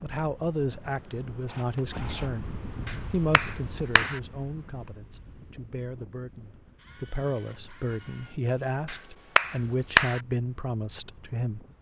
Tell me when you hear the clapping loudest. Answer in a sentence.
The loudest moment of the clapping is at 10 seconds.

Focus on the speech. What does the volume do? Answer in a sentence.
The volume of the speech goes down, then up.